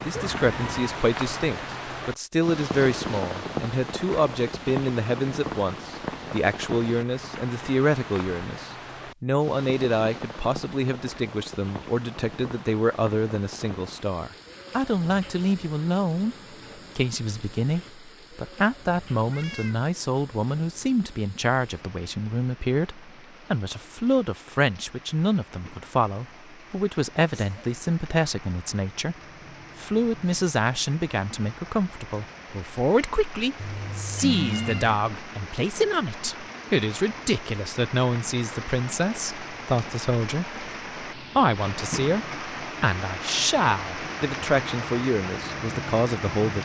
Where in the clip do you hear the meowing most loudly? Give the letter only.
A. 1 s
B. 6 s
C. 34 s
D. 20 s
C.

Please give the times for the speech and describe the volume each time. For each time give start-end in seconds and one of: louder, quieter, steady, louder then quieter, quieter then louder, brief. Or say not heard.
0.0-16.4 steady
16.9-29.1 steady
29.8-46.6 steady.